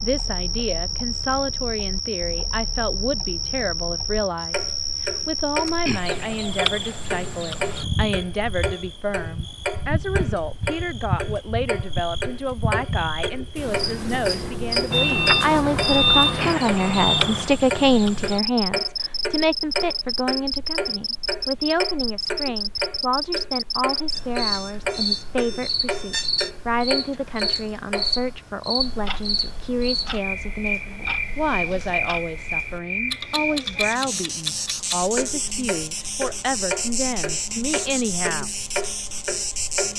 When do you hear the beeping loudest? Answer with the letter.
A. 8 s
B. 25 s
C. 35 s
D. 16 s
D.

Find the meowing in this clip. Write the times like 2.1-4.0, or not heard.
not heard.